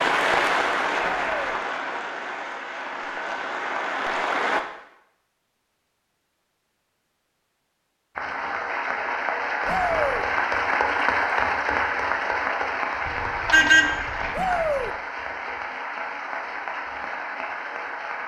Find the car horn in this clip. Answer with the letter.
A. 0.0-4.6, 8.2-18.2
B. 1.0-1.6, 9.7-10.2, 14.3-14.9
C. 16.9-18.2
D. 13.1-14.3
D.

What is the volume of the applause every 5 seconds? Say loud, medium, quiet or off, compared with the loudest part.
loud, loud, loud, medium.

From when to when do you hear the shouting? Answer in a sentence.
The shouting can be heard from 1.0 to 1.6 s, from 9.7 to 10.2 s and from 14.3 to 14.9 s.